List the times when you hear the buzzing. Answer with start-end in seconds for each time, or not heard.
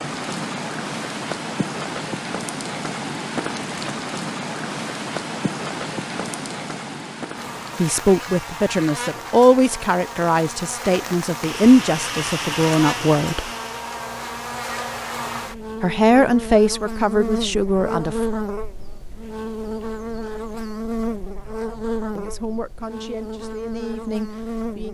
7.3-24.9.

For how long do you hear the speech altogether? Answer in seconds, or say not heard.
11 s.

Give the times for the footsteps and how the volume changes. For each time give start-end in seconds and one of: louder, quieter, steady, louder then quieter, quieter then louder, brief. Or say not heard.
not heard.